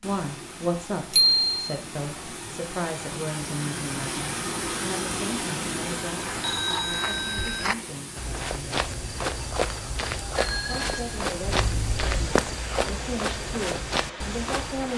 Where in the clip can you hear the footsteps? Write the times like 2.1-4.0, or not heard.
6.2-14.9.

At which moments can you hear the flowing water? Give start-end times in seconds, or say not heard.
0.0-14.9.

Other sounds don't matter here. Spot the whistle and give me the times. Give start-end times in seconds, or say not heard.
not heard.